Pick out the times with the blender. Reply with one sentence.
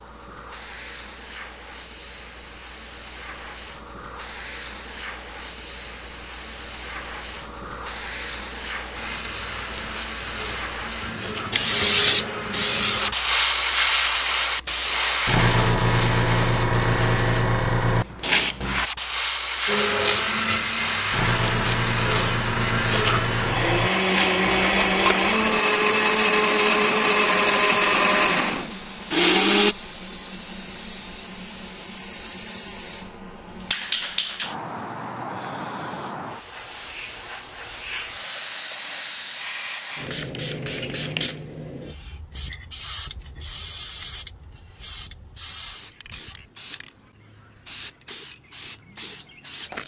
You can hear the blender from 8.9 to 13.2 s and from 19.6 to 29.8 s.